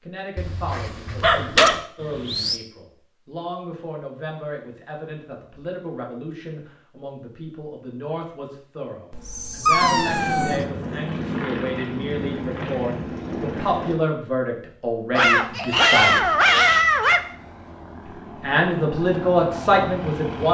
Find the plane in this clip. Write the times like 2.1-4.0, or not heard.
9.8-14.0, 16.1-20.4.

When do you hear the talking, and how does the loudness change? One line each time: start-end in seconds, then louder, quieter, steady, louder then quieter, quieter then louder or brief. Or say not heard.
0.0-16.3 louder
18.4-20.4 brief.